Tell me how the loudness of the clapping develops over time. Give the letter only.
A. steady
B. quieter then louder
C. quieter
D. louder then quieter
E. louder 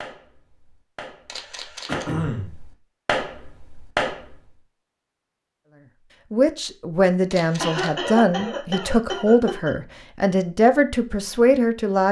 B.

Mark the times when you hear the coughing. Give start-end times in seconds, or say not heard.
1.9-2.5, 7.6-9.7.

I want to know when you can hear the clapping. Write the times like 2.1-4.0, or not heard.
0.0-4.5.